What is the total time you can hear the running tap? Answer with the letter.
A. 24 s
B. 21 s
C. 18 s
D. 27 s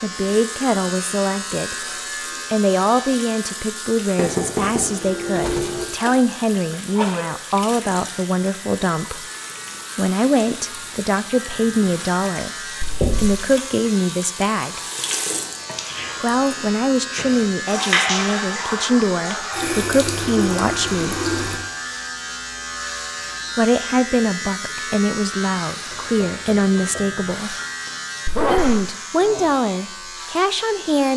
B.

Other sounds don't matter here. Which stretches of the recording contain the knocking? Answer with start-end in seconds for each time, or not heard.
4.2-5.8, 13.0-13.5, 25.9-27.1.